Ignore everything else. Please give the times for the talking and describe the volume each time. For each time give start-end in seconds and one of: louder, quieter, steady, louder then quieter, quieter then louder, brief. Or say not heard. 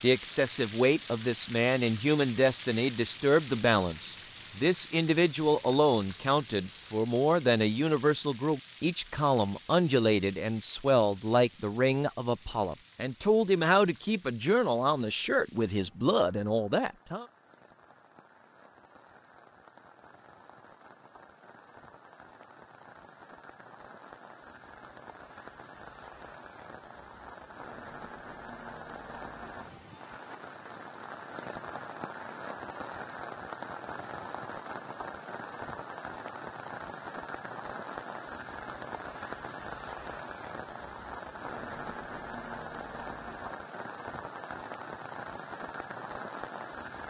0.0-17.2 steady.